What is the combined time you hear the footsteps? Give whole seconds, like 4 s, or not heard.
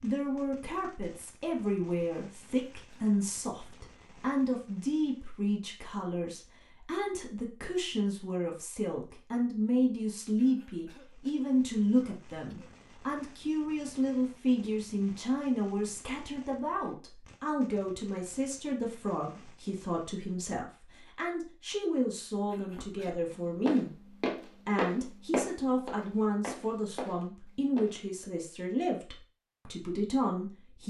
5 s.